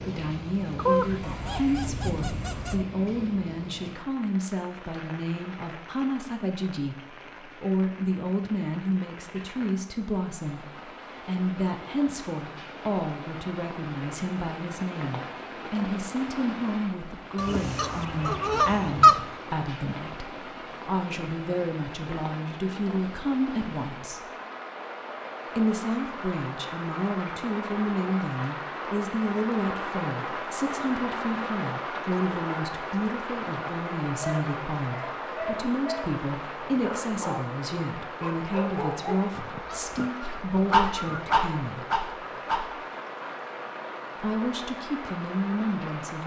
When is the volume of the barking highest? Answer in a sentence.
The loudest moment of the barking is at 41 seconds.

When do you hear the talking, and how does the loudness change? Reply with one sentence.
The talking can be heard from 0.0 to 24.2 s, at a steady volume; from 25.5 to 41.9 s, at a steady volume; and briefly from 44.2 to 46.2 s.